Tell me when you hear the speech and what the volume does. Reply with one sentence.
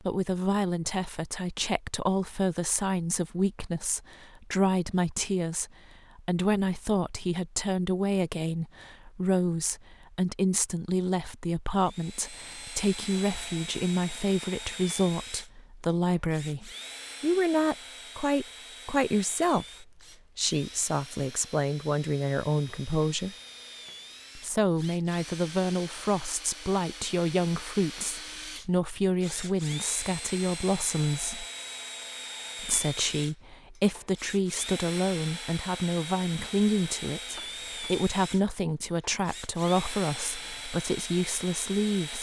The speech can be heard from 0.0 to 23.4 s, at a steady volume; from 24.4 to 31.4 s, at a steady volume; and from 32.6 to 42.1 s, at a steady volume.